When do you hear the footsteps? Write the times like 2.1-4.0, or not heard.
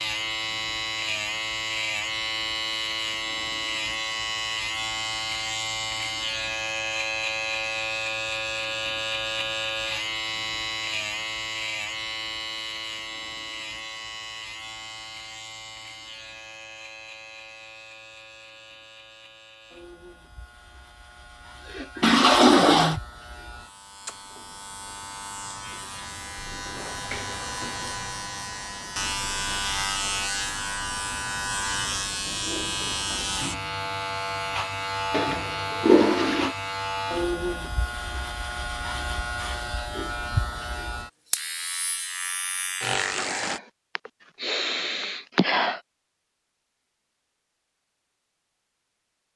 not heard.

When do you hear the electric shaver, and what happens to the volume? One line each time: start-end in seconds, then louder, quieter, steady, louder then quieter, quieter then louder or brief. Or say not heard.
0.0-43.6 quieter then louder.